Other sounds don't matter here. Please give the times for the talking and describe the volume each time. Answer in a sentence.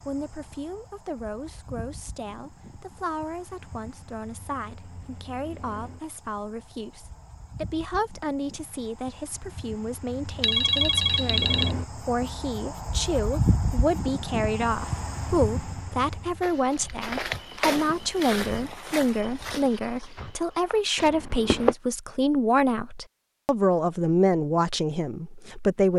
The talking can be heard from 0.0 to 25.9 s, getting louder.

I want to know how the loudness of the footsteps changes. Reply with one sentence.
The volume of the footsteps goes down.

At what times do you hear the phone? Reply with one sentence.
You can hear the phone from 10.4 to 11.8 s.